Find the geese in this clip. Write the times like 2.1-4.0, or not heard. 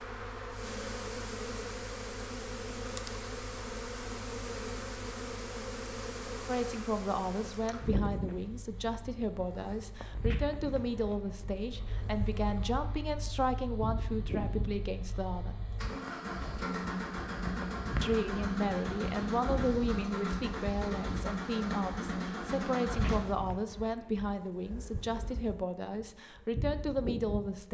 not heard.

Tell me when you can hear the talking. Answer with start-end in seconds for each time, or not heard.
6.5-15.7, 18.0-27.6.